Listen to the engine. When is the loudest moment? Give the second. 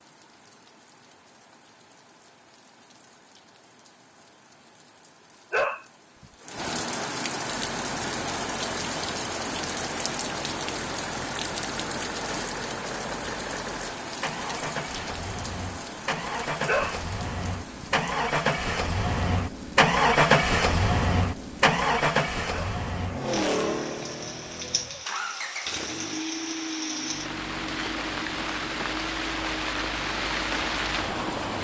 20 s.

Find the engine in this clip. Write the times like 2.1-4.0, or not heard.
7.5-31.5.